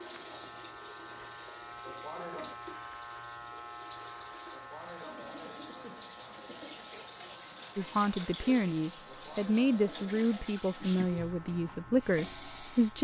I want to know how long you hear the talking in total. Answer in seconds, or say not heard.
5 s.